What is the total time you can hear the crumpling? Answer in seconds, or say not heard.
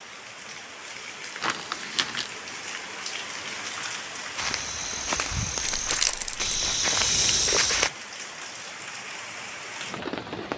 2 s.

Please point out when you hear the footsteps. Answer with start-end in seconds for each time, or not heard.
4.3-7.9.